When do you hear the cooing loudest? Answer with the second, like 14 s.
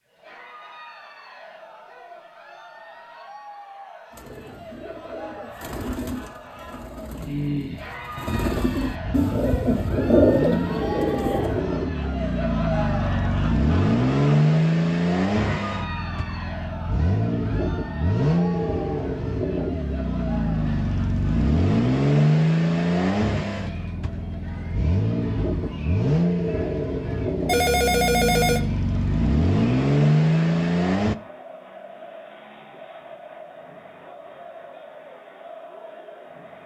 10 s.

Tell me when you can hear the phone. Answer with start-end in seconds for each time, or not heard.
27.4-28.6.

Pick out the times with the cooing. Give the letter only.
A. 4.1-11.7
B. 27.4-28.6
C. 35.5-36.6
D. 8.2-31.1
A.